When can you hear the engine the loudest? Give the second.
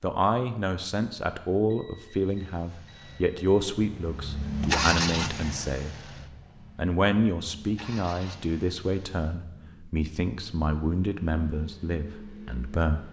5 s.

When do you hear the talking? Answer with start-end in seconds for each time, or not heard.
0.0-6.0, 6.8-13.0.